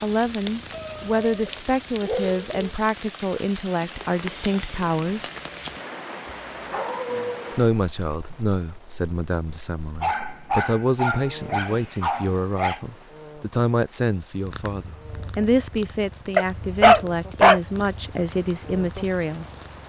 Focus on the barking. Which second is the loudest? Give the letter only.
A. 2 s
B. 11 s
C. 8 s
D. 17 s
D.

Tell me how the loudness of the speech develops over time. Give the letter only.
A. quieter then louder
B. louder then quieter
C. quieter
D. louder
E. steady
E.